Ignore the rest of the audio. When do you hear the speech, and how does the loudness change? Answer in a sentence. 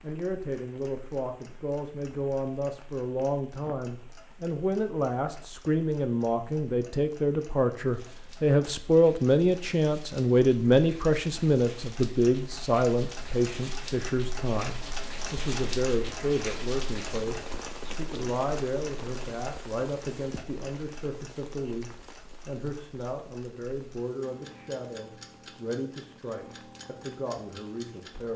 The speech can be heard from 0.0 to 28.3 s, getting louder then quieter.